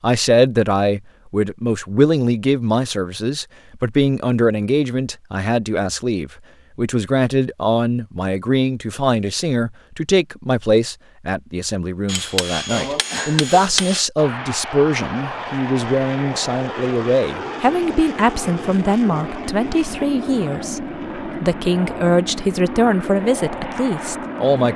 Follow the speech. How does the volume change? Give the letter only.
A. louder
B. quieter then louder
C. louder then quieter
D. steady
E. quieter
D.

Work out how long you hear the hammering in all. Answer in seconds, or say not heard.
2 s.